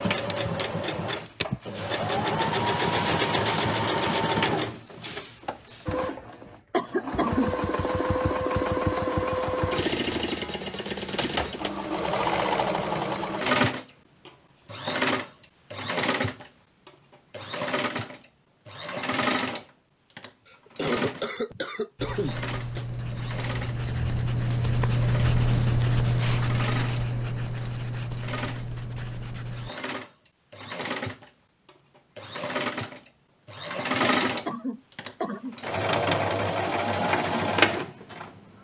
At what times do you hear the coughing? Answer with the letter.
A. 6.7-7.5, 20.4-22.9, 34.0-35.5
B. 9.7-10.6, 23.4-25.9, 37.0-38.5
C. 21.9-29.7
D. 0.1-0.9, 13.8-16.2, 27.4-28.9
A.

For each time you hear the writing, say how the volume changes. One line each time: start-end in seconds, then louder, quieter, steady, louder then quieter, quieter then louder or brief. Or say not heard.
21.9-29.7 louder then quieter.